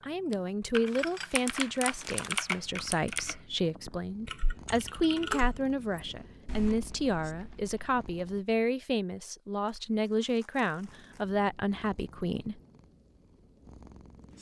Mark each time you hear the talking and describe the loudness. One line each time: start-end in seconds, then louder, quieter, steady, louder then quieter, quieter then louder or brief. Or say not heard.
0.0-12.6 steady.